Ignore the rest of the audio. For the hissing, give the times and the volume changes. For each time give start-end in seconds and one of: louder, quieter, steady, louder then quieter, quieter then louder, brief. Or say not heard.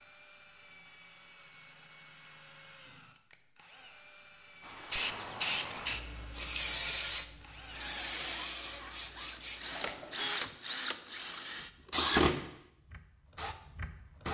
4.9-10.2 quieter.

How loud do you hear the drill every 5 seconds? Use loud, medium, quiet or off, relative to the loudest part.
quiet, quiet, loud.